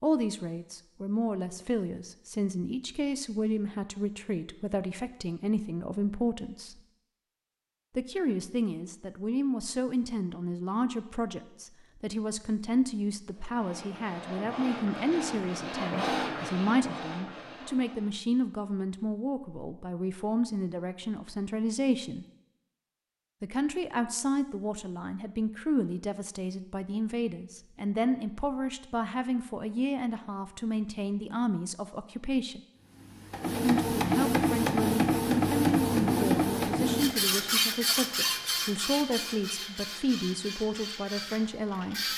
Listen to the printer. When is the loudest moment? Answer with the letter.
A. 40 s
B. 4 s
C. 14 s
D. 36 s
D.